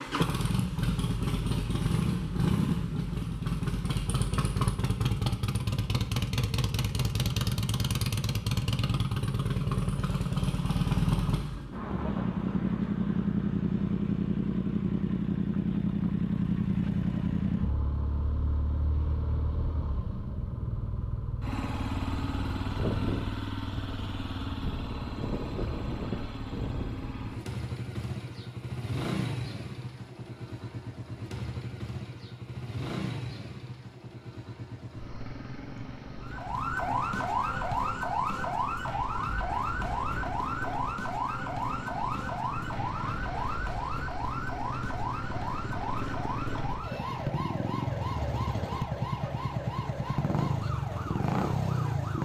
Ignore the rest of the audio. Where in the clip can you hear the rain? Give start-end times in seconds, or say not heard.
not heard.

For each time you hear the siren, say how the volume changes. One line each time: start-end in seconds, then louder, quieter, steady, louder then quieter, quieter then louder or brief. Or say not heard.
36.2-52.2 quieter.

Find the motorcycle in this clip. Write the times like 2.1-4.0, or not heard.
0.0-52.2.